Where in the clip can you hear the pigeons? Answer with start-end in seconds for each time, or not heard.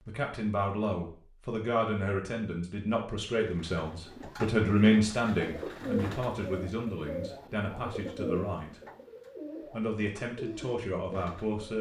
3.3-11.7.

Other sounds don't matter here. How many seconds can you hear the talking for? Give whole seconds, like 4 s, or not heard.
11 s.